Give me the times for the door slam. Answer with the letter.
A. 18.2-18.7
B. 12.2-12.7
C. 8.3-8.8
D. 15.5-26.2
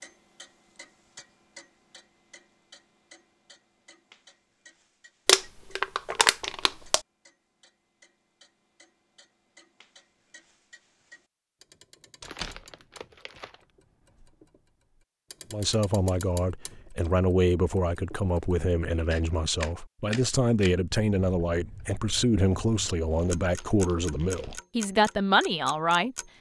B.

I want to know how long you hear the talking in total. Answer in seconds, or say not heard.
11 s.